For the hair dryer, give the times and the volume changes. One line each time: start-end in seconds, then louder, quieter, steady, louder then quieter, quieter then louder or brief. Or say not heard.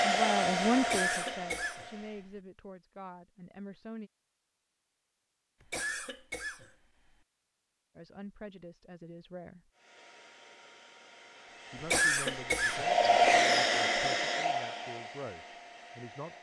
0.0-2.2 brief
9.8-16.3 louder then quieter.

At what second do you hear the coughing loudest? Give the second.
12 s.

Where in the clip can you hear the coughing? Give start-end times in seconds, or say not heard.
0.8-1.9, 5.6-7.1, 11.8-12.9.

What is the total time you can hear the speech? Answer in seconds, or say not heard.
11 s.